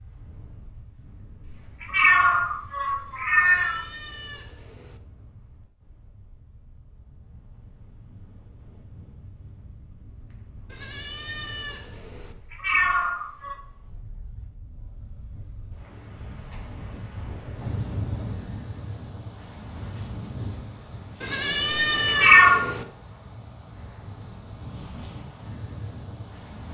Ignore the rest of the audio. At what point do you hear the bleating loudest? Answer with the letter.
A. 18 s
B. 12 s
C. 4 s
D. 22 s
D.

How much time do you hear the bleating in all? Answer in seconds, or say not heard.
5 s.